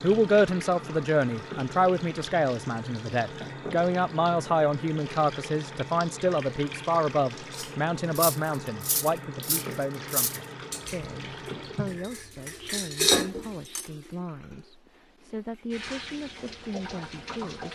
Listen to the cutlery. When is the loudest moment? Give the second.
13 s.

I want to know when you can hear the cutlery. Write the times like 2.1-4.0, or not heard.
7.5-13.9.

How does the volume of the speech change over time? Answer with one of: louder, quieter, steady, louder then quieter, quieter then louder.
quieter.